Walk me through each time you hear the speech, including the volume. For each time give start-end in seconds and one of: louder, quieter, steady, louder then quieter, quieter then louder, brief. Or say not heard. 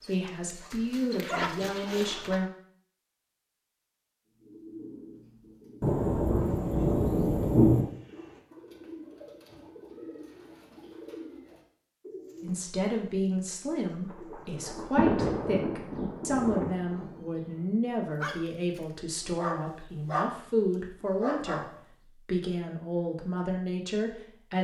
0.1-2.5 brief
12.4-24.5 steady.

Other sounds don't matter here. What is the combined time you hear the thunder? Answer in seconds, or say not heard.
5 s.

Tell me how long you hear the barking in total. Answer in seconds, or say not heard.
6 s.